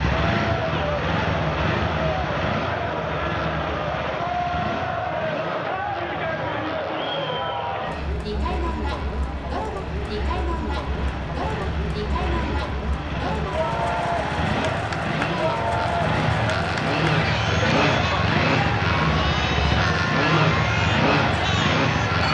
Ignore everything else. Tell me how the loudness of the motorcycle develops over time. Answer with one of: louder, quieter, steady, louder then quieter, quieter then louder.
quieter then louder.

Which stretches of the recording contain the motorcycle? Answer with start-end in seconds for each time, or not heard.
0.0-22.2.